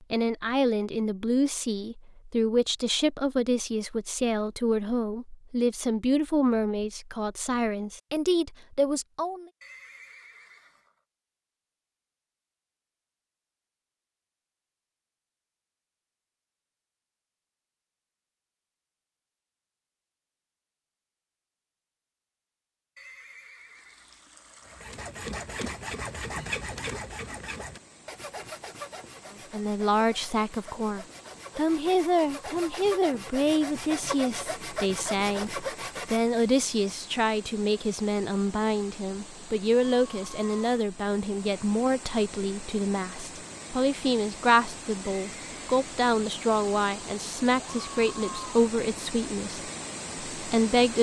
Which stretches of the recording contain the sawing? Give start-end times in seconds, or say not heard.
24.6-36.2.